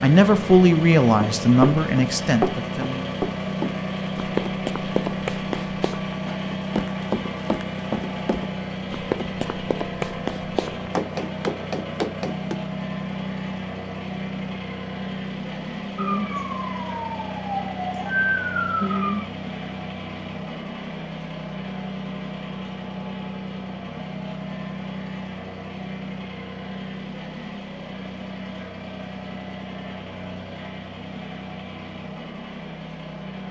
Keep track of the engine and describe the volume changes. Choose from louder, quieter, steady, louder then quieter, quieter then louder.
quieter.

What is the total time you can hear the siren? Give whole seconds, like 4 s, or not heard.
3 s.